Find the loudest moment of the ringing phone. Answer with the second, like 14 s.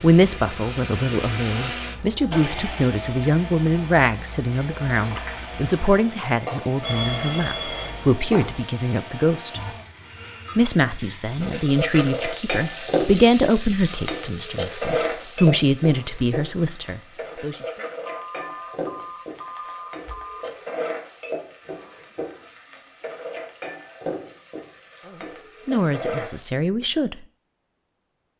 7 s.